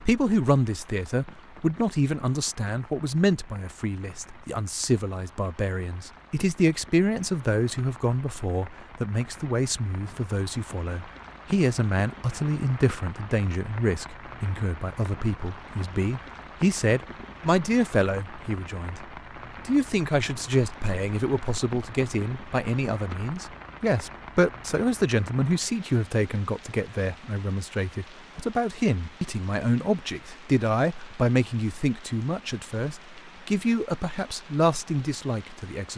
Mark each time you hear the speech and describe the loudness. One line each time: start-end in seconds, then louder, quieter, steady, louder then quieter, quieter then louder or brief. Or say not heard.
0.0-35.9 steady.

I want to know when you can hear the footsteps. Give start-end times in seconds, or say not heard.
not heard.